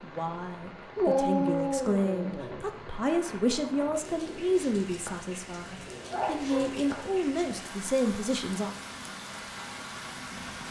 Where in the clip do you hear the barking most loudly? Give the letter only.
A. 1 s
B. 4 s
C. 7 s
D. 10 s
A.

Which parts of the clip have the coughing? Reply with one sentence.
You can't hear the coughing here.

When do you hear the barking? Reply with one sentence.
The barking can be heard from 0.9 to 2.6 s and from 6.1 to 6.8 s.